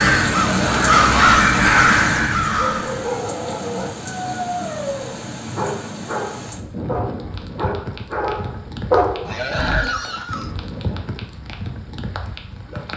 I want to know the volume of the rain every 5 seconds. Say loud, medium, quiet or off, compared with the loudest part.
loud, medium, medium.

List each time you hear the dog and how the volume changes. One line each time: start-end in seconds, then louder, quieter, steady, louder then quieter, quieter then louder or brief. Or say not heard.
2.5-9.8 louder.